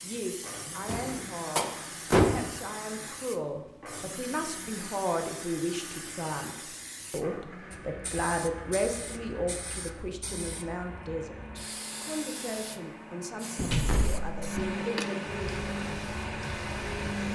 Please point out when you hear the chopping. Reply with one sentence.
You can't hear the chopping here.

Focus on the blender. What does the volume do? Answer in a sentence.
The volume of the blender goes up.